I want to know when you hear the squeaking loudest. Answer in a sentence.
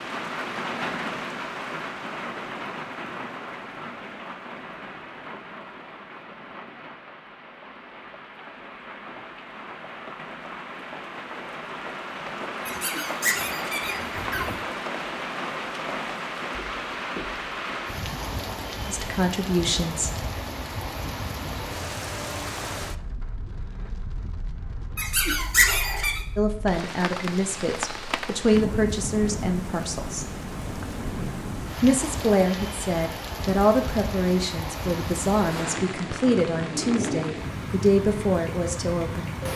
The volume of the squeaking peaks at 26 seconds.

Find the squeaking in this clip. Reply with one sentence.
The squeaking can be heard from 12.7 to 14.6 s and from 24.9 to 26.2 s.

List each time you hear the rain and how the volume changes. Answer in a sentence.
The rain can be heard from 0.0 to 39.5 s, at a steady volume.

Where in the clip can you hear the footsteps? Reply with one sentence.
You can't hear the footsteps here.